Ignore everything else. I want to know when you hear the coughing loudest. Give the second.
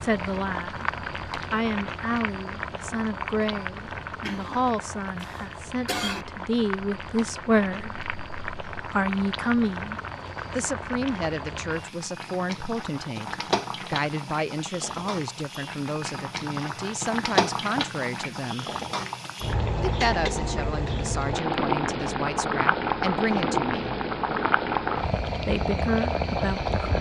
6 s.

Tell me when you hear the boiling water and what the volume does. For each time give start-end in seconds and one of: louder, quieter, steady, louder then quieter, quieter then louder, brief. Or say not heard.
0.0-26.9 louder.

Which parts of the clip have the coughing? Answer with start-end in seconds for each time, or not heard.
4.2-6.2.